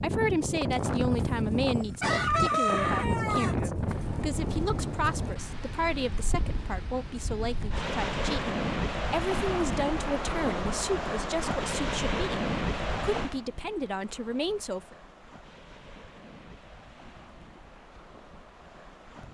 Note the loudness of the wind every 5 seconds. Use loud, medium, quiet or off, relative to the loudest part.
loud, loud, loud, quiet.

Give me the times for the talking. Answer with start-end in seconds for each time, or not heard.
0.0-14.9.